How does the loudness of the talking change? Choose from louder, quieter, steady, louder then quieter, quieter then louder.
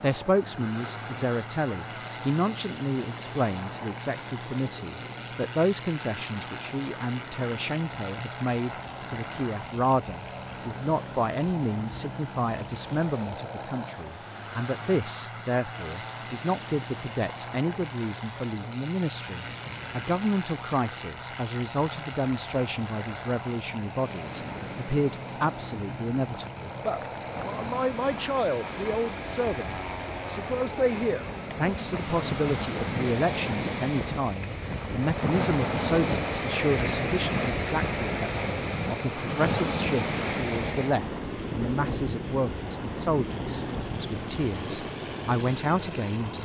steady.